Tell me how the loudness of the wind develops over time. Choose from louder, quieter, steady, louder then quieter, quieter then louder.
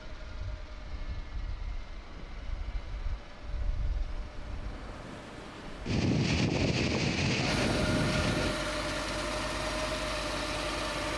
louder.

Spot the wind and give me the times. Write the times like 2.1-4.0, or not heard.
0.0-8.6.